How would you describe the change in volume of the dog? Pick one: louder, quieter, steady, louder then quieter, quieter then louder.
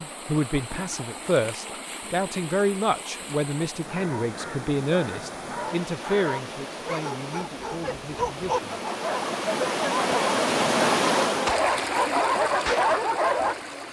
louder.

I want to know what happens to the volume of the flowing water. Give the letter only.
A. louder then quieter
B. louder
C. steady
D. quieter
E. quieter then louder
B.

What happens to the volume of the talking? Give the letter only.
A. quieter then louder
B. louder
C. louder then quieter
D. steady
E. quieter
E.